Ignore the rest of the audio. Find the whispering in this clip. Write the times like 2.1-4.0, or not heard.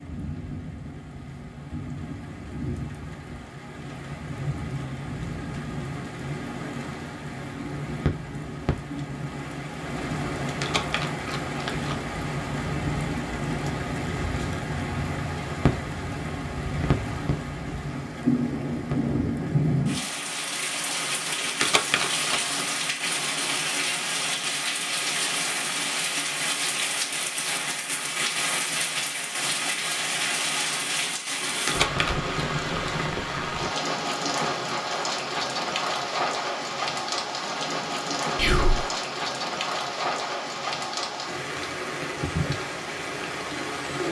38.4-38.8.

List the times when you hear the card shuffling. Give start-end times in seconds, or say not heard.
10.4-11.9, 21.4-22.6, 31.4-32.3.